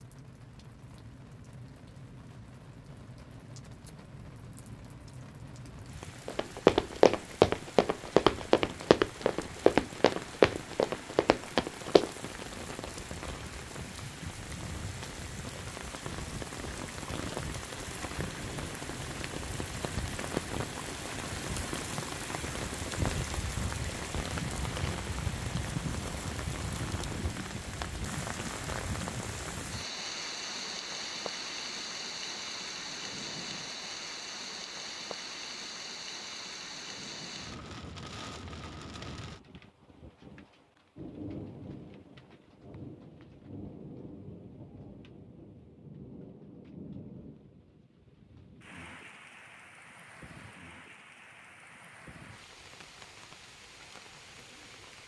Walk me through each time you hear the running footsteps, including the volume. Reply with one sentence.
You can hear the running footsteps from 6.2 to 12.1 s, getting quieter.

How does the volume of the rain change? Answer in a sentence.
The loudness of the rain goes up, then down.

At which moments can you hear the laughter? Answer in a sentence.
You can't hear the laughter here.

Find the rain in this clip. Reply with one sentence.
You can hear the rain from 0.0 to 55.0 s.